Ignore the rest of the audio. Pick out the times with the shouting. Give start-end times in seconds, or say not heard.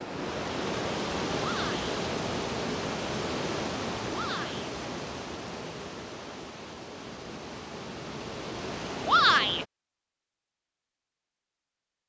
1.4-1.9, 4.1-4.7, 9.1-9.7.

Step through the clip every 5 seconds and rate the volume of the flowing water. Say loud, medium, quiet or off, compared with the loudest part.
loud, medium, off.